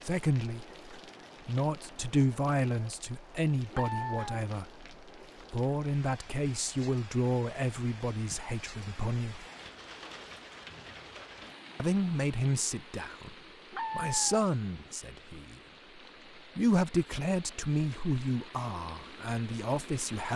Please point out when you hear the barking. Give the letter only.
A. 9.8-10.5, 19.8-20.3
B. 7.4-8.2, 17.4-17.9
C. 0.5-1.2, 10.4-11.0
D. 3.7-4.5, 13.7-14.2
D.